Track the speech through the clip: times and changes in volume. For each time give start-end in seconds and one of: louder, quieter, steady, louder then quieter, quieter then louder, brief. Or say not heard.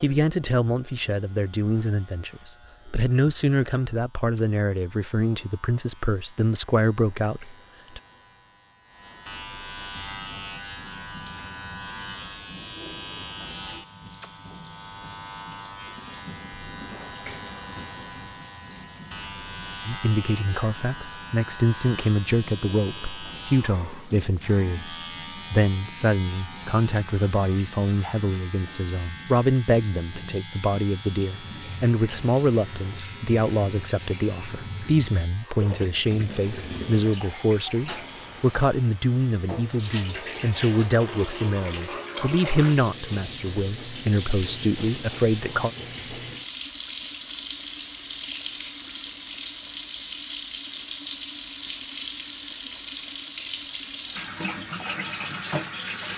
0.0-8.0 steady
19.9-45.7 steady.